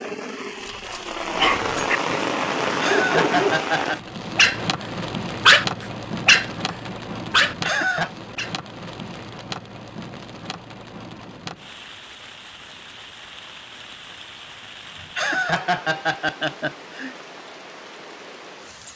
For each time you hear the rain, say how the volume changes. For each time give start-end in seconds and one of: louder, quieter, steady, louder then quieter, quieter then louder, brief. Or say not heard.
0.0-18.9 quieter.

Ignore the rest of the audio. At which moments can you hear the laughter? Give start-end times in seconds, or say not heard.
2.6-4.0, 7.5-8.1, 14.9-17.1.